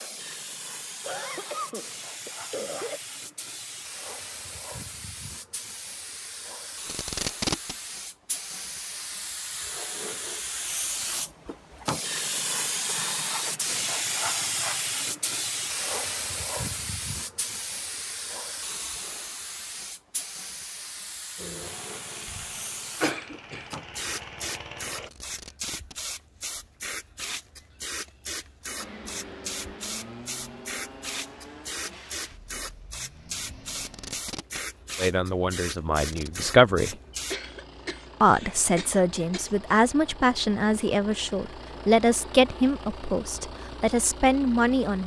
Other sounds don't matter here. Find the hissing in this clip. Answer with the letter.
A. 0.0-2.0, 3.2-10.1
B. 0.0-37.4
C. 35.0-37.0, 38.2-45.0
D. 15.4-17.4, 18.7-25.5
B.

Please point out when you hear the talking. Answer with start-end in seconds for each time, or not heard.
35.0-37.0, 38.2-45.0.